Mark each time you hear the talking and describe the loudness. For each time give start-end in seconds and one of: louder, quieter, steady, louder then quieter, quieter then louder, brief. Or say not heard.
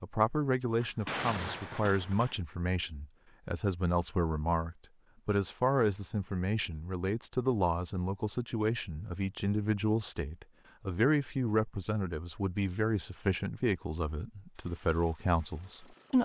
0.0-16.2 steady.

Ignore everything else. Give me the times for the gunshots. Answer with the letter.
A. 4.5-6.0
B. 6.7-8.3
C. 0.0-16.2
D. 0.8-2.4
D.